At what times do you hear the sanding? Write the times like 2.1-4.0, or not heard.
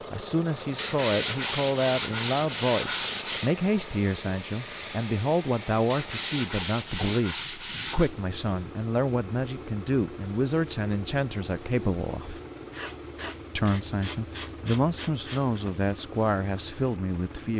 0.8-3.5, 5.9-8.1, 12.7-15.6.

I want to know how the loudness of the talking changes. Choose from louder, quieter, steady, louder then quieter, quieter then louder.
steady.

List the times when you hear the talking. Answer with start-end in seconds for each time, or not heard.
0.1-12.4, 13.6-17.5.